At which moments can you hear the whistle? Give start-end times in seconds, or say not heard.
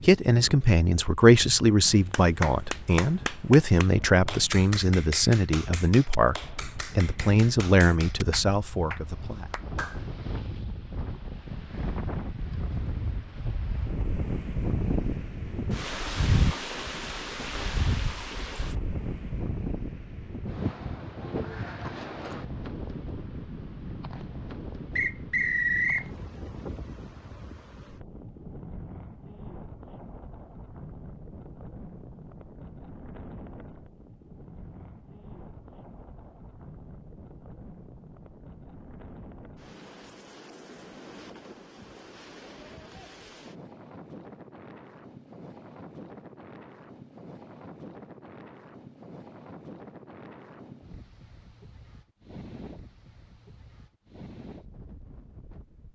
24.9-26.1.